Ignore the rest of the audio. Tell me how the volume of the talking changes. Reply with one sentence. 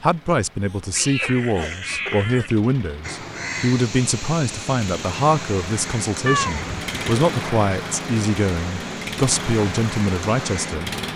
The volume of the talking stays about the same.